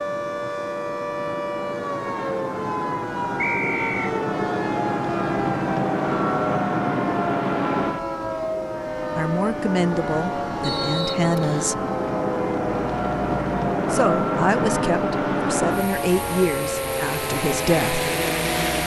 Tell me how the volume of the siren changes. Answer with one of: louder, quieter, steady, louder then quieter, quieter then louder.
steady.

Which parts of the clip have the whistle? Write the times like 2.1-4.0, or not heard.
3.4-4.0, 10.6-11.8.